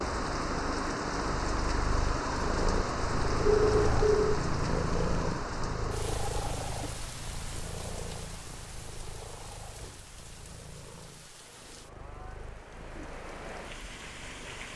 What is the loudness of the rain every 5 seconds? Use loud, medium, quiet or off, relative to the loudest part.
loud, medium, quiet.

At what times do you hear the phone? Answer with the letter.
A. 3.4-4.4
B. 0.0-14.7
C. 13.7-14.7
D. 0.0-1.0
A.